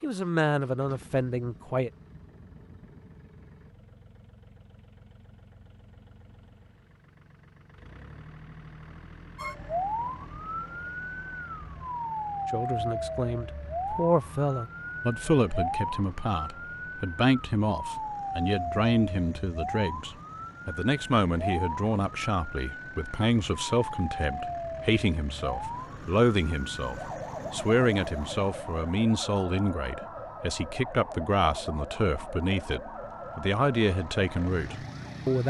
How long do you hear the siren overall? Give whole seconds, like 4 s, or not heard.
26 s.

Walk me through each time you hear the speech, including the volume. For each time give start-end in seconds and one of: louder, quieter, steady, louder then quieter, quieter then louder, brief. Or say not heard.
0.0-1.9 brief
12.5-35.4 steady.